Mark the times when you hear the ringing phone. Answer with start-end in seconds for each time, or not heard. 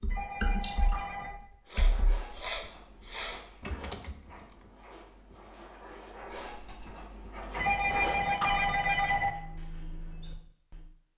0.1-1.3, 7.5-9.3.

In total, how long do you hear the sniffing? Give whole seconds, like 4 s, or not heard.
2 s.